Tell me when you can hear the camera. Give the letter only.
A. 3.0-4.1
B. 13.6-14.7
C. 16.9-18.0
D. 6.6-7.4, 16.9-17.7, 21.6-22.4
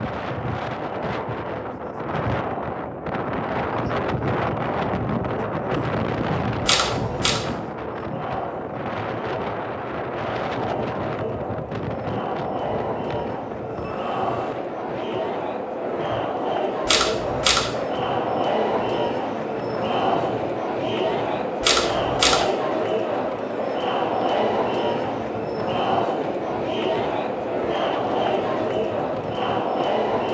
D.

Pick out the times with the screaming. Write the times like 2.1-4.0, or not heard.
13.6-14.7.